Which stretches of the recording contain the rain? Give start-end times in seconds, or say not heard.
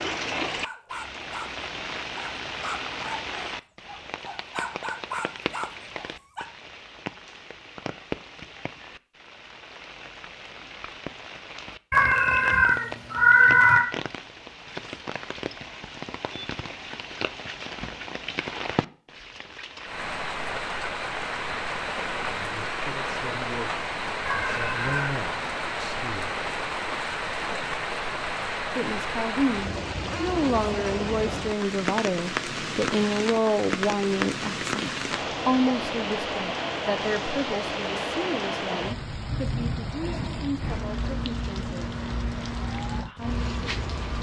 0.0-44.1.